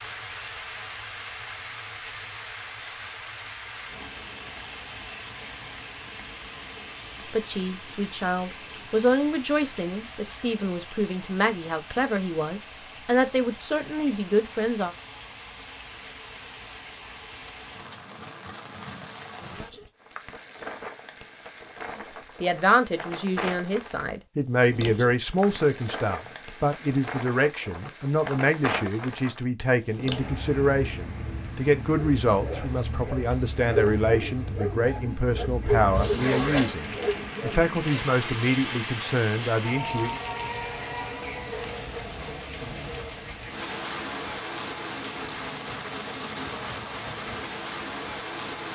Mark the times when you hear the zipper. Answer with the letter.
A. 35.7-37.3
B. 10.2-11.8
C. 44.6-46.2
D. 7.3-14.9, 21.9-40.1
A.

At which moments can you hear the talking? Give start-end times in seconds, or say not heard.
7.3-14.9, 21.9-40.1.